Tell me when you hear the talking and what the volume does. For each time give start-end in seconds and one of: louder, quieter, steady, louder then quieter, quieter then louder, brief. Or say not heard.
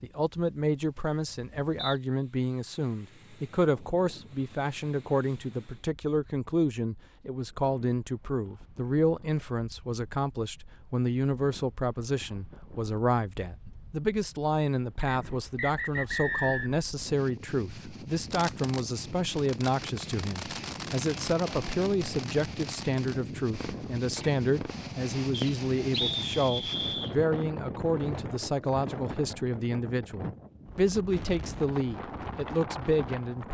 0.0-33.4 steady.